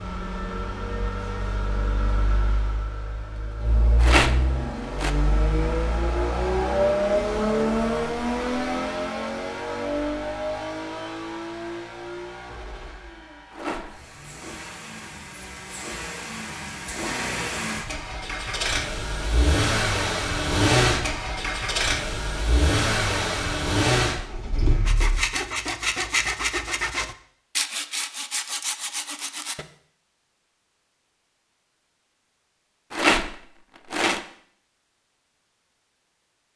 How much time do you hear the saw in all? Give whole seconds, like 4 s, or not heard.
5 s.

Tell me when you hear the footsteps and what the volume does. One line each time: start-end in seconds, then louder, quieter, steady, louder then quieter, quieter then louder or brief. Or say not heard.
not heard.